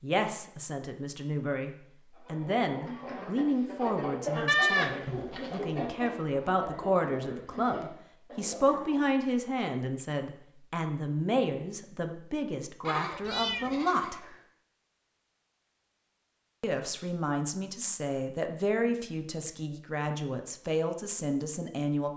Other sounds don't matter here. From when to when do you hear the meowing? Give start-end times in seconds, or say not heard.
13.2-13.8.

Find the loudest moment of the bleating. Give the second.
5 s.